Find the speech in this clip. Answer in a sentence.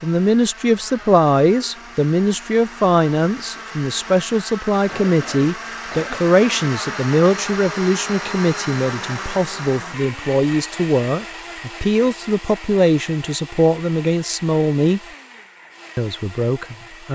You can hear the speech from 0.0 to 15.0 s and from 15.9 to 17.0 s.